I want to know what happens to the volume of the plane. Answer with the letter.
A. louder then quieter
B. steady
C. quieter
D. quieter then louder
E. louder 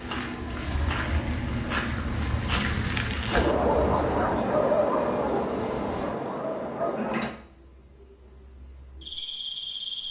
C.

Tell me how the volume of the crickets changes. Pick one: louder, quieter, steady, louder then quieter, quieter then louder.
louder then quieter.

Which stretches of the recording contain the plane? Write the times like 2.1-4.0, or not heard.
0.0-6.2.